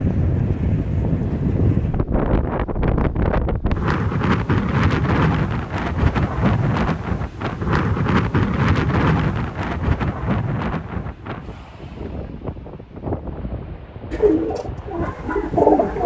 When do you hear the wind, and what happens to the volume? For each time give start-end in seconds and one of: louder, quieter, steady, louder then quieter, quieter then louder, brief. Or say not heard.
0.0-16.0 quieter.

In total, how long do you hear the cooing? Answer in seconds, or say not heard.
2 s.